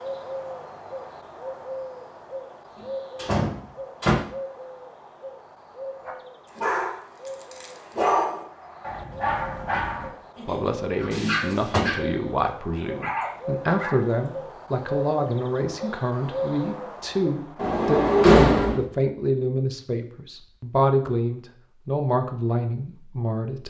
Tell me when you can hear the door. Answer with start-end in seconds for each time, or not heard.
3.2-4.2, 11.1-11.8, 17.6-18.8.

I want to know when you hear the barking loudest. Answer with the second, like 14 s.
8 s.